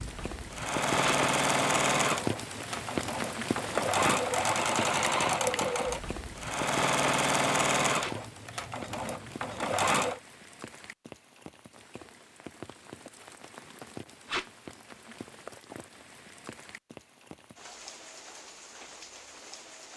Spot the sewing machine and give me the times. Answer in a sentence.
The sewing machine can be heard from 0.0 to 10.2 s.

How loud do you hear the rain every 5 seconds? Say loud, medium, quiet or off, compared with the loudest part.
loud, medium, quiet, quiet.